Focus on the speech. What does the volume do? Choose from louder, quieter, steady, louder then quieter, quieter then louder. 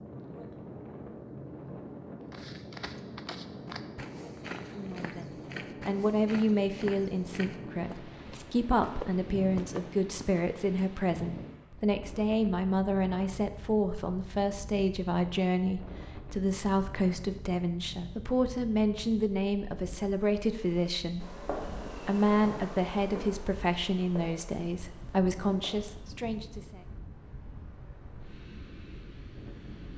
steady.